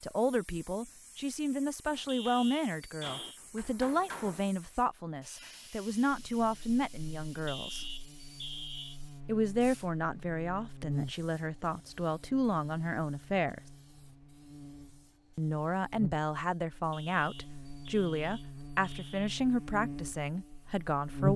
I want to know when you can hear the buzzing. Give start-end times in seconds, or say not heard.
6.1-21.3.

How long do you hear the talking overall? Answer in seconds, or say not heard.
18 s.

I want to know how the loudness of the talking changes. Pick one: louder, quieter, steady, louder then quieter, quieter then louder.
steady.